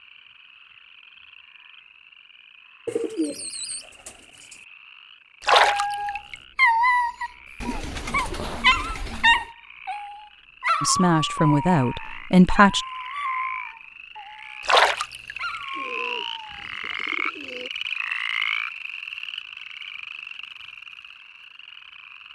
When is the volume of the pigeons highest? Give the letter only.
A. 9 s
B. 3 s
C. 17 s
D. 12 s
B.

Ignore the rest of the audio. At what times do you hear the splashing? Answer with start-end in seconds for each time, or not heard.
5.4-6.3, 14.7-15.6.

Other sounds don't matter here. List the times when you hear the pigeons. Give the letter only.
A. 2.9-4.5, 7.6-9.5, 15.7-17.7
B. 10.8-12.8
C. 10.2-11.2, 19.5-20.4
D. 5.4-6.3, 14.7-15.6
A.